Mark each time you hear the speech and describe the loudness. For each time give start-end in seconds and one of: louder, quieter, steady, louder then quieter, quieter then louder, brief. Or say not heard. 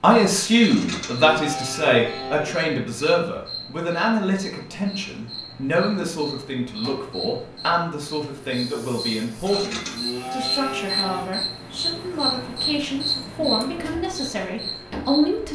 0.0-15.5 quieter.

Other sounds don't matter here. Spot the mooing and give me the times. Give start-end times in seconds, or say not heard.
0.6-2.5, 9.4-11.3.